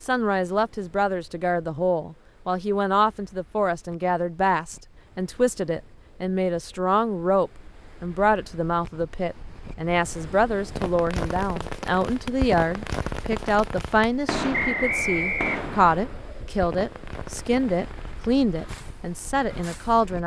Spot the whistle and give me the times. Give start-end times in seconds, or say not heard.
14.5-15.7.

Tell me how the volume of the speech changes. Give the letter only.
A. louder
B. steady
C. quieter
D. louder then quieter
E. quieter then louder
B.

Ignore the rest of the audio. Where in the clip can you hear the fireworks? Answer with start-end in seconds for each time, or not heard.
10.8-20.0.